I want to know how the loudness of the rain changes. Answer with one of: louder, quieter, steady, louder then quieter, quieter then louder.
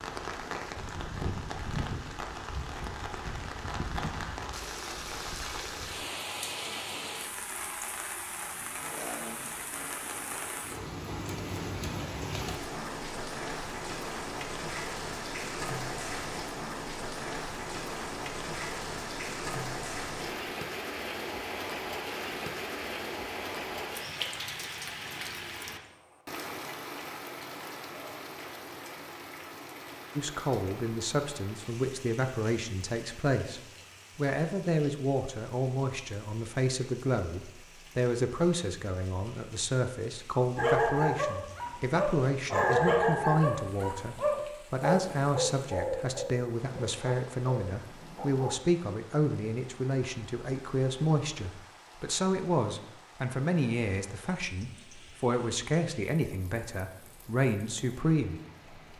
quieter.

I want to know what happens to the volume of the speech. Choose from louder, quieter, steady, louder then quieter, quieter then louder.
steady.